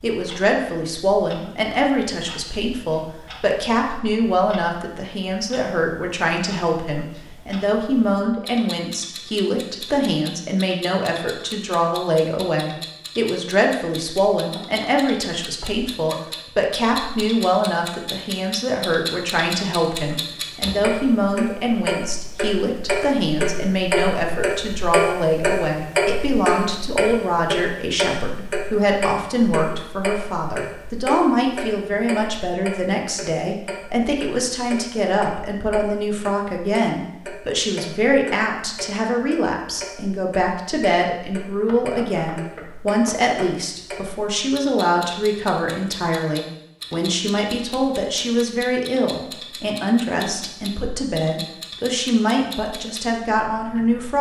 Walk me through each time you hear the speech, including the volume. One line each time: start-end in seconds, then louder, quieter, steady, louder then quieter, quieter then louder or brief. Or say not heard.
0.0-54.1 steady.